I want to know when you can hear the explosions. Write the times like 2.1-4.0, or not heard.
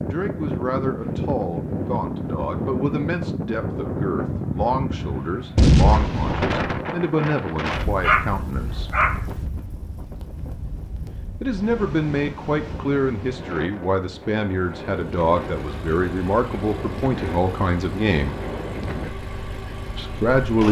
5.5-6.8.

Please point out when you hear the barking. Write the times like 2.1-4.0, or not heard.
7.8-9.2.